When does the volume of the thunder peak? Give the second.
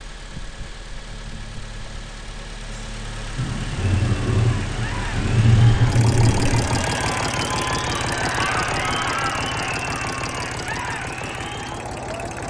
6 s.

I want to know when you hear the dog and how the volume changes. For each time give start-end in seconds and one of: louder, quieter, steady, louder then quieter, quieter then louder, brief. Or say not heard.
not heard.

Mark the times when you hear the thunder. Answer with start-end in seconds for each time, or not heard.
3.4-6.8.